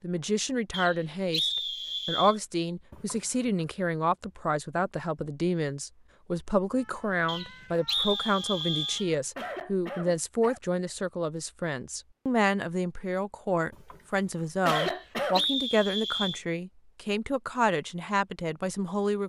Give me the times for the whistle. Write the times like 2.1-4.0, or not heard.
0.7-2.4, 7.2-9.1, 14.8-16.4.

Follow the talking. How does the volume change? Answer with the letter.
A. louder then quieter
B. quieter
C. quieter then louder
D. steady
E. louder
D.